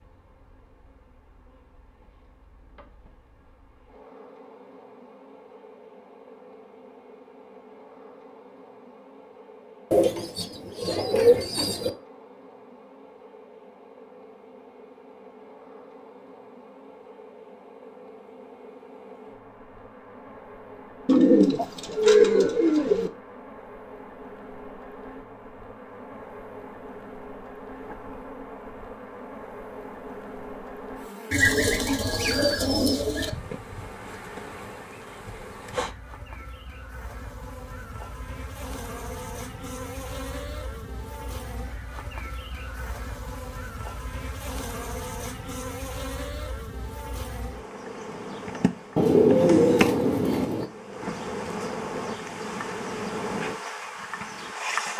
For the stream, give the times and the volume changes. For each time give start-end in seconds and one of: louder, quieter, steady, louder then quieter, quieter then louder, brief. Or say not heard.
not heard.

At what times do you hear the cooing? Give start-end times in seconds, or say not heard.
9.9-11.9, 21.1-23.1, 31.3-33.3, 49.0-50.6.